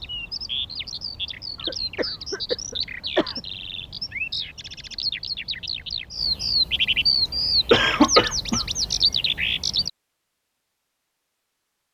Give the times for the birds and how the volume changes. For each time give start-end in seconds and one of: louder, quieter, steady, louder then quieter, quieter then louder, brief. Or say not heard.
0.0-9.9 louder.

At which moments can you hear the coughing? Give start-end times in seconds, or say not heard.
1.6-3.4, 7.2-8.7.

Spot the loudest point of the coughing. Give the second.
8 s.